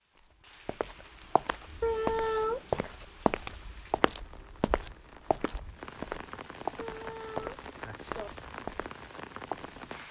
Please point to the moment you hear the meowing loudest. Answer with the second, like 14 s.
2 s.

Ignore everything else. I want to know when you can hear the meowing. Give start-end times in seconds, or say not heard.
1.8-2.8, 6.8-8.3.